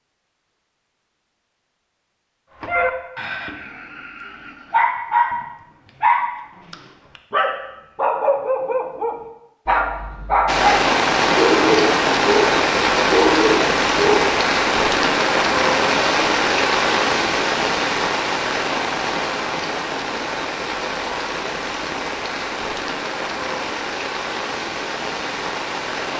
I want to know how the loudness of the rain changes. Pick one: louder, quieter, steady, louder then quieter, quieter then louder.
quieter.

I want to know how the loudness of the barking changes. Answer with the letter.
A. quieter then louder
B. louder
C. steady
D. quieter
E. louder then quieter
B.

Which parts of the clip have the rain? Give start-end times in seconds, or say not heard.
10.4-26.1.